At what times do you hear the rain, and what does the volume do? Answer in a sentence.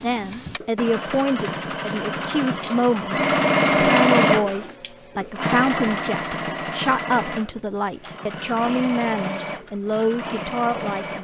The rain can't be heard in this clip.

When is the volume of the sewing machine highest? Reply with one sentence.
The loudest moment of the sewing machine is at 4 seconds.